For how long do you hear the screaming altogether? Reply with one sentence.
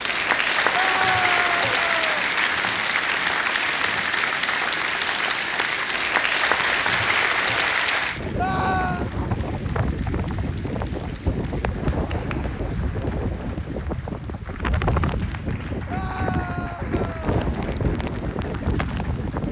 You can hear the screaming for 4 seconds altogether.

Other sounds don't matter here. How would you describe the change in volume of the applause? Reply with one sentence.
The loudness of the applause goes down.